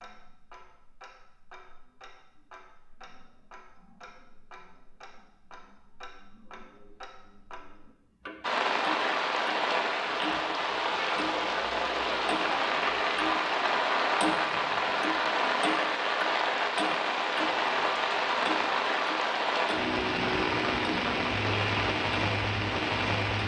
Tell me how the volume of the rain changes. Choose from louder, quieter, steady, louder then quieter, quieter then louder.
steady.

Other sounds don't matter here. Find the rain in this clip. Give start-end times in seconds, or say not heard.
8.4-23.4.